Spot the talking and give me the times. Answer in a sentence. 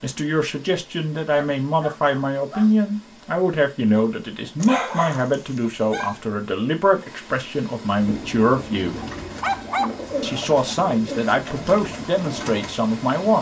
You can hear the talking from 0.0 to 9.0 s and from 10.2 to 13.3 s.